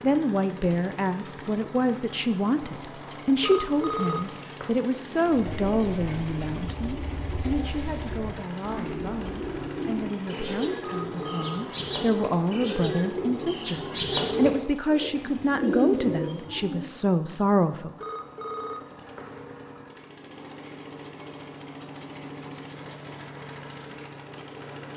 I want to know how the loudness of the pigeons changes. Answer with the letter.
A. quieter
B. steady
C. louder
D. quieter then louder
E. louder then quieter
C.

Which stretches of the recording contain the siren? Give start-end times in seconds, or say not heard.
not heard.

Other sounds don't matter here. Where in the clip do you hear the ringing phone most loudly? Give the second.
4 s.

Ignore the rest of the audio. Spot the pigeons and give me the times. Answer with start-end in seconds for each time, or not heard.
5.2-16.9.